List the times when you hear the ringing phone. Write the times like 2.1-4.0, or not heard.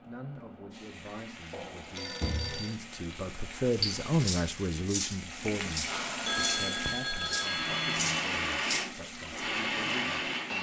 1.5-2.8, 6.2-8.0.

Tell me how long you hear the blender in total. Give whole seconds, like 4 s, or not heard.
5 s.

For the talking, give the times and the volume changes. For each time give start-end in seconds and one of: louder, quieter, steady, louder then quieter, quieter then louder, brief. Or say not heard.
0.1-10.5 louder then quieter.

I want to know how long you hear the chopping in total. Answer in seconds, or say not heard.
not heard.